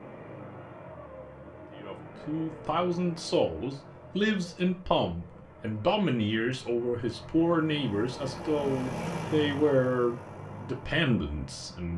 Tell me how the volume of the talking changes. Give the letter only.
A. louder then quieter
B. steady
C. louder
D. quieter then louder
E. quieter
B.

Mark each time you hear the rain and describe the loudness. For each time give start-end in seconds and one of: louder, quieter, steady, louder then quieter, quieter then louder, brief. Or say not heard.
not heard.